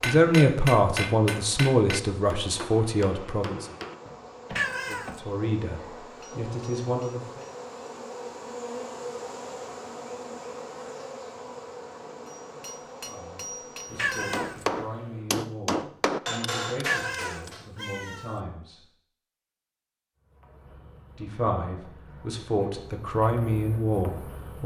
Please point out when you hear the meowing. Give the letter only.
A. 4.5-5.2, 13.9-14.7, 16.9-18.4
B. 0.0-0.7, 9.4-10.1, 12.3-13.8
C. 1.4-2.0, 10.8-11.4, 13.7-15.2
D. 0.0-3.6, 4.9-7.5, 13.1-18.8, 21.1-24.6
A.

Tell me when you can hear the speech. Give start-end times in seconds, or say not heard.
0.0-3.6, 4.9-7.5, 13.1-18.8, 21.1-24.6.